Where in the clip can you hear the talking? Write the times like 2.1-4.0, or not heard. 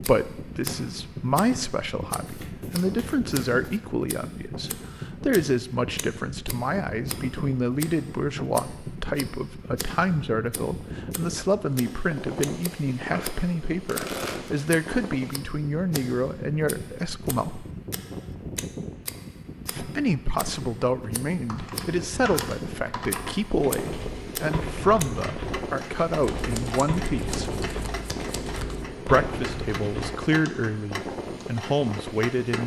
0.0-17.6, 19.6-27.5, 29.1-32.6.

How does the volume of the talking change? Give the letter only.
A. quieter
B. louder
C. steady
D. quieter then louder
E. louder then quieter
C.